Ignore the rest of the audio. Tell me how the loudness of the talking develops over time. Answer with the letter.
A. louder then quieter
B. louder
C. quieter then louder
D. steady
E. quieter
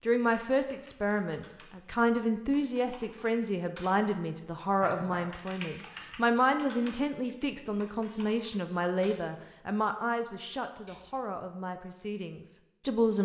E.